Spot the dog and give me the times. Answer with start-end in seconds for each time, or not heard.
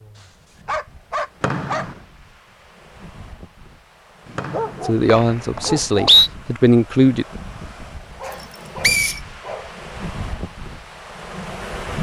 0.1-1.9, 4.2-6.0, 8.2-9.8.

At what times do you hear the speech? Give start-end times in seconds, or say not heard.
4.8-7.2.